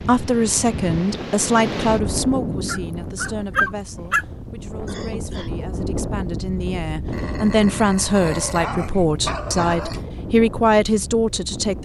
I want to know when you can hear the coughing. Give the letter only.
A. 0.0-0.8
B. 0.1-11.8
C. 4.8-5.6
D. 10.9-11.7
C.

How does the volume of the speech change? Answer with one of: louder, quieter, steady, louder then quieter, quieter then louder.
quieter then louder.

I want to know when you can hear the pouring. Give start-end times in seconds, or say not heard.
not heard.